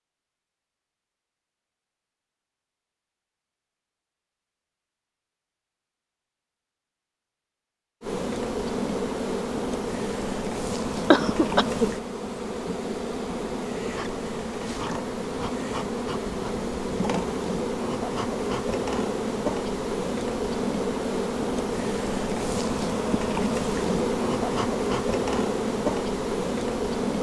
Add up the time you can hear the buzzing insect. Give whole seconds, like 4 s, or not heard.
19 s.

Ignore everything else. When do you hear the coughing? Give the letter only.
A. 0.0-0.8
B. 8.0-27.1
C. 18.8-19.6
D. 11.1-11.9
D.